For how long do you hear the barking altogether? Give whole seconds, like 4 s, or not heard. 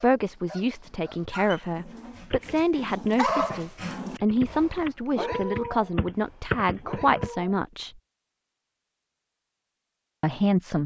7 s.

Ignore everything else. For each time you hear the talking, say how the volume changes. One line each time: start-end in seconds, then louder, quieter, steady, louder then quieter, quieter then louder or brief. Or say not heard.
0.0-8.0 steady
10.2-10.8 brief.